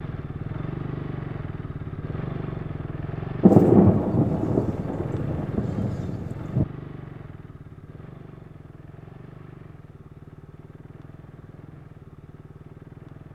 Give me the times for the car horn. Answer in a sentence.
The car horn can't be heard in this clip.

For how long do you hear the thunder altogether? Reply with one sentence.
You can hear the thunder for 3 seconds altogether.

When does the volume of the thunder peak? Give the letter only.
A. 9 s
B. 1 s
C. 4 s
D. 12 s
C.